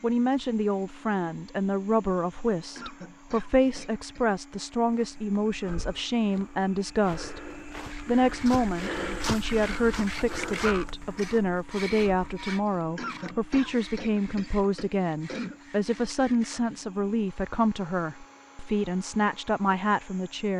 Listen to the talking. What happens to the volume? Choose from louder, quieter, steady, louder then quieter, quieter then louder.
steady.